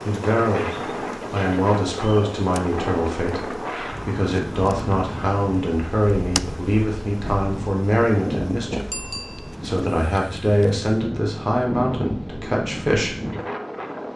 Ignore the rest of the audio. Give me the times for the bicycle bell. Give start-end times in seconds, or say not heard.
8.9-9.6.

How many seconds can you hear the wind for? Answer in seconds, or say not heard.
14 s.